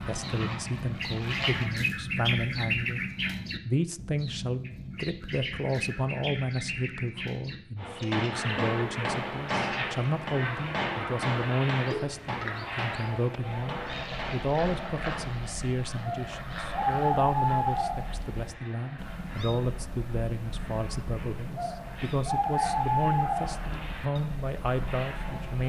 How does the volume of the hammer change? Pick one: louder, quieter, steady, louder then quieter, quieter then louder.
quieter.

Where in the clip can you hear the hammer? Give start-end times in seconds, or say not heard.
7.8-15.6.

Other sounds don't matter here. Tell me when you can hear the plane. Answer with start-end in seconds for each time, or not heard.
0.0-1.7, 8.3-25.6.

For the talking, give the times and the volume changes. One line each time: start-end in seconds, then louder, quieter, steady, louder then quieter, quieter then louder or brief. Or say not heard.
0.0-25.6 steady.